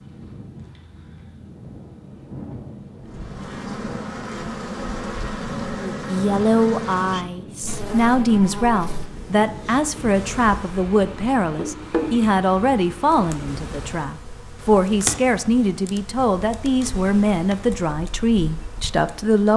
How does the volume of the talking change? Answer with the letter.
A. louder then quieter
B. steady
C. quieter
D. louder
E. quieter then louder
B.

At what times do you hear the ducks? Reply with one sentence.
You can't hear the ducks here.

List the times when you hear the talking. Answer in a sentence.
You can hear the talking from 5.8 to 19.5 s.